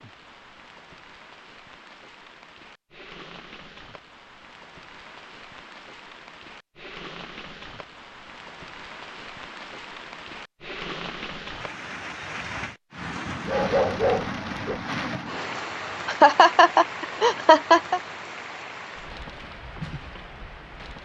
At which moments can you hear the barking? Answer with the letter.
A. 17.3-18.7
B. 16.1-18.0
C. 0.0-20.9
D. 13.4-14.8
D.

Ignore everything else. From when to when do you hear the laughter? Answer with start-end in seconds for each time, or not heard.
16.1-18.0.